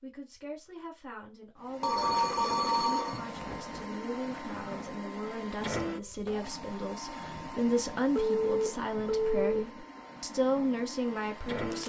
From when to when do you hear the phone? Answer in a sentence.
The phone can be heard from 1.8 to 3.2 s and from 8.2 to 9.6 s.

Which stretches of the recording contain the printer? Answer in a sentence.
The printer can be heard from 1.6 to 11.8 s.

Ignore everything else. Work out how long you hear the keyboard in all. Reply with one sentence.
The keyboard can't be heard in this clip.